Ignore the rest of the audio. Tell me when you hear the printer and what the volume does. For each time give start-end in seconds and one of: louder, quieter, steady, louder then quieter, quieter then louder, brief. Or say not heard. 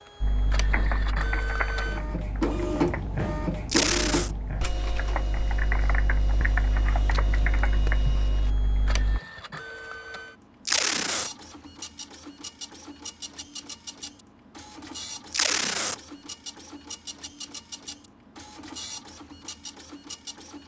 0.0-20.6 quieter.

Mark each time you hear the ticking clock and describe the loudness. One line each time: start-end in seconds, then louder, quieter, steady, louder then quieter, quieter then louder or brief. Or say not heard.
not heard.